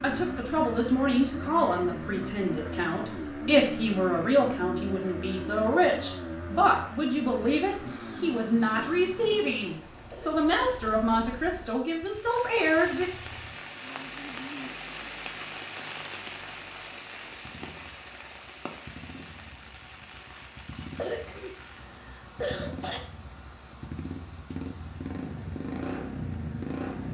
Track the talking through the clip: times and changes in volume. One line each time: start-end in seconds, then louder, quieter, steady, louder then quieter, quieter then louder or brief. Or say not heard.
0.0-13.1 steady.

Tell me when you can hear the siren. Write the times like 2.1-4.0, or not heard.
not heard.